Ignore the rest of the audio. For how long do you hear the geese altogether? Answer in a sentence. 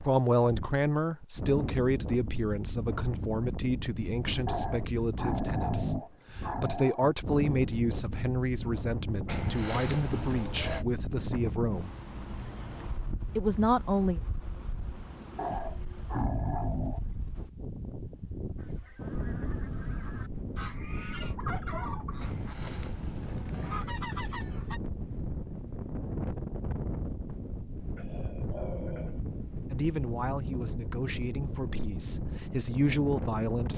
The geese can be heard for 6 seconds in total.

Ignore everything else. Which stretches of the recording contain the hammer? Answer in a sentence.
You can't hear the hammer here.